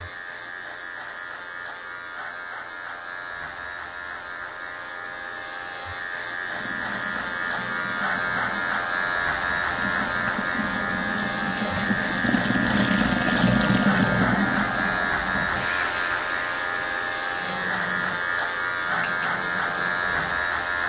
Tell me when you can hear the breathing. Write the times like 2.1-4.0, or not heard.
not heard.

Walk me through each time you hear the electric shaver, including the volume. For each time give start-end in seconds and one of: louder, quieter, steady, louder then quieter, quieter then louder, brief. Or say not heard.
0.0-20.8 louder.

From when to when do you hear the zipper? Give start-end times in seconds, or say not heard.
not heard.